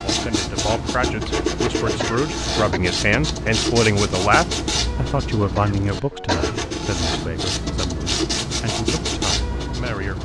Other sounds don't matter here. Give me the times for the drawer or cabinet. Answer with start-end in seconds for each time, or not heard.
not heard.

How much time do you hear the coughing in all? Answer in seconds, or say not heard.
2 s.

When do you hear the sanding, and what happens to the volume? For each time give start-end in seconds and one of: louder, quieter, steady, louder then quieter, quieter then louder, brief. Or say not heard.
0.0-10.2 steady.